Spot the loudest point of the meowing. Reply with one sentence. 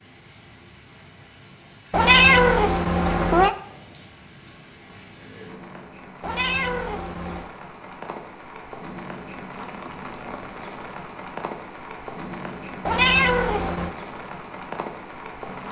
The volume of the meowing peaks at 2 seconds.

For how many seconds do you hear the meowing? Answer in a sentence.
You can hear the meowing for 4 seconds altogether.